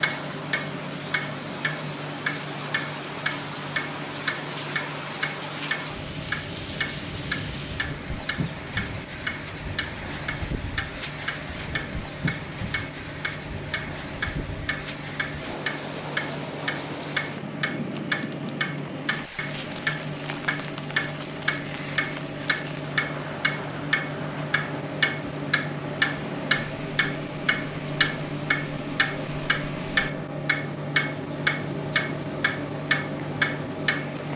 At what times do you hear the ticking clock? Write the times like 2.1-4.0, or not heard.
0.0-34.3.